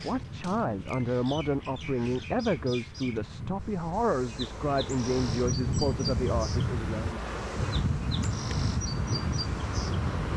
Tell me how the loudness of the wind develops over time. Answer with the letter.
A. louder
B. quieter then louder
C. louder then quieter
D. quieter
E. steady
A.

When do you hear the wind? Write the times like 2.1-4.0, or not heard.
0.0-10.3.